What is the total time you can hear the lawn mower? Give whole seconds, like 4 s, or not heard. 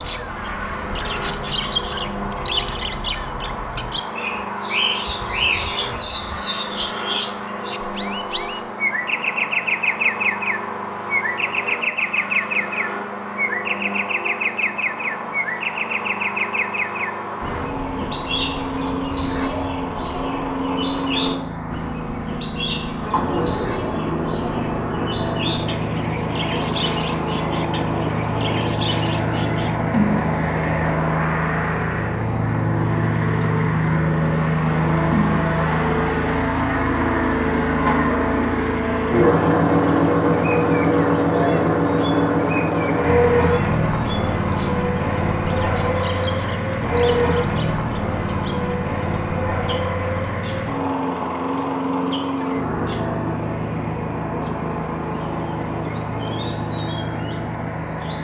58 s.